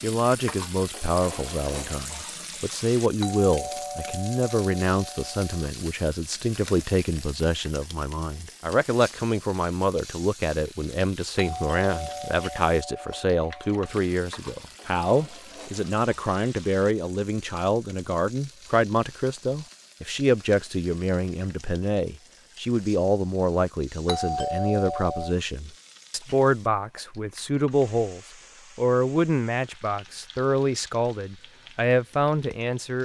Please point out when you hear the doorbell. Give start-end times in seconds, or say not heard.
3.2-5.5, 11.3-13.8, 24.1-25.4.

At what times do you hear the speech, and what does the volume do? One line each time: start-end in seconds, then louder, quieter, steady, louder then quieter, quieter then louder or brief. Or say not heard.
0.0-32.9 steady.